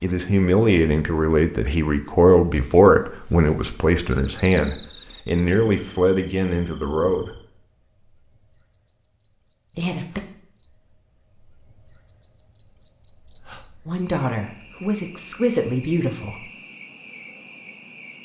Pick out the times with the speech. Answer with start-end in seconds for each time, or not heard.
0.0-7.3, 9.8-10.2, 13.8-16.4.